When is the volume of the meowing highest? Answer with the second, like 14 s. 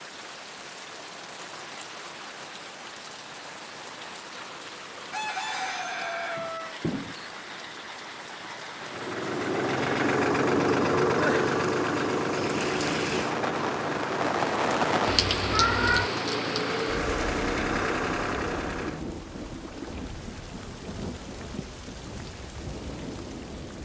16 s.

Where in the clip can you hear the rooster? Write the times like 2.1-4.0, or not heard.
5.1-6.8.